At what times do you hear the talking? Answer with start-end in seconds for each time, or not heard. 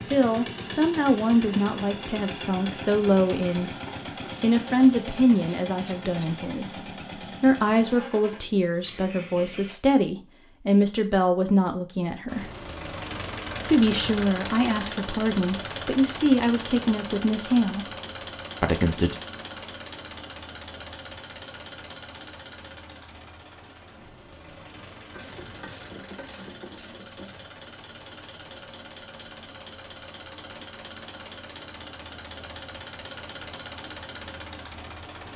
0.1-3.7, 4.4-12.4, 13.7-17.9, 18.6-19.1.